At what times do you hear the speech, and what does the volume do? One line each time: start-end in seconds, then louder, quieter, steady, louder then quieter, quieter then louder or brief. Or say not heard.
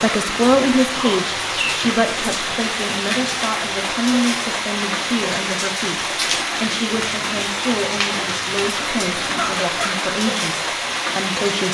0.0-11.6 quieter.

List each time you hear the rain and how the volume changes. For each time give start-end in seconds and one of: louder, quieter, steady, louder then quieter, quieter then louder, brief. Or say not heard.
0.0-11.6 steady.